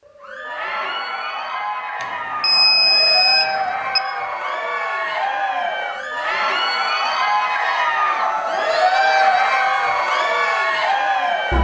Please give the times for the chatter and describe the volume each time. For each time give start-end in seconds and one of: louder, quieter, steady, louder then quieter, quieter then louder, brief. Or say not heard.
0.1-11.5 louder.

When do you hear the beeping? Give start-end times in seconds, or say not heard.
2.0-4.0.